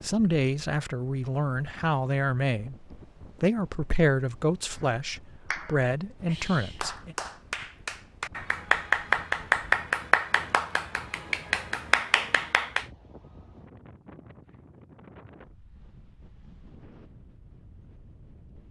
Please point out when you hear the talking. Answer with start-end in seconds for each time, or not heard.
0.0-7.2.